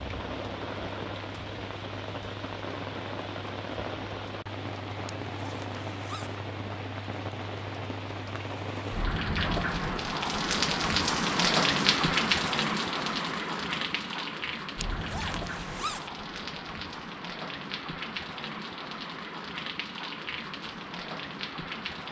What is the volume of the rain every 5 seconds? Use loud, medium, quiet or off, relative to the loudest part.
medium, medium, loud, medium, medium.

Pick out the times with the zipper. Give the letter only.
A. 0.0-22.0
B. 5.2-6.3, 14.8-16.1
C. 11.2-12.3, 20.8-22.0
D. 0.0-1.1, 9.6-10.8
B.